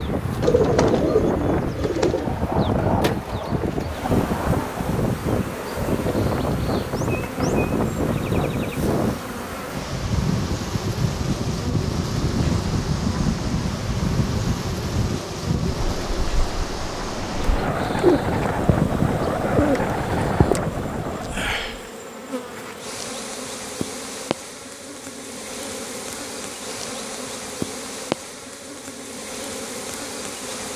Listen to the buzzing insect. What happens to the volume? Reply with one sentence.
The volume of the buzzing insect stays about the same.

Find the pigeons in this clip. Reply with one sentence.
The pigeons can be heard from 0.4 to 2.3 s and from 18.0 to 20.6 s.